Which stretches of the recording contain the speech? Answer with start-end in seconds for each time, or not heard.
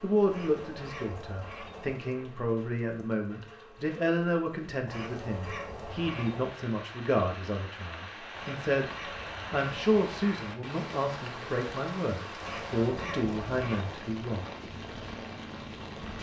0.0-8.9, 9.5-14.5.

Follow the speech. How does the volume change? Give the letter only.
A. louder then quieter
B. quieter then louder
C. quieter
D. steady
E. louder
D.